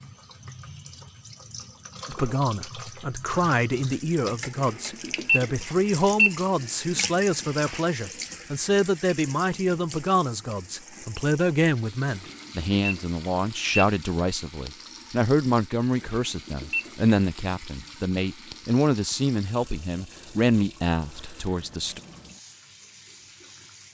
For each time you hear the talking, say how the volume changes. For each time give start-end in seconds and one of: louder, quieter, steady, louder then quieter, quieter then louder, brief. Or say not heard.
2.0-22.0 steady.